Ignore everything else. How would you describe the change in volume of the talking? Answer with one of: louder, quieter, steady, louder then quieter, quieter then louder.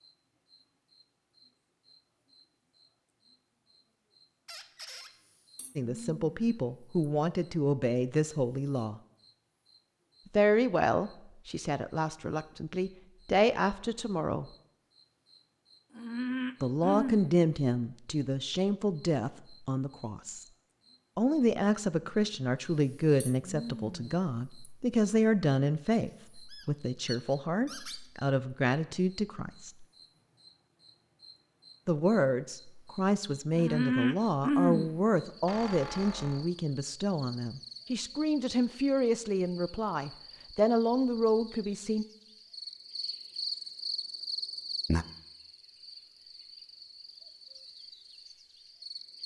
steady.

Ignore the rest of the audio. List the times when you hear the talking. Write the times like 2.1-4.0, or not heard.
5.8-9.0, 10.3-14.4, 16.6-20.4, 21.1-29.9, 31.9-42.0.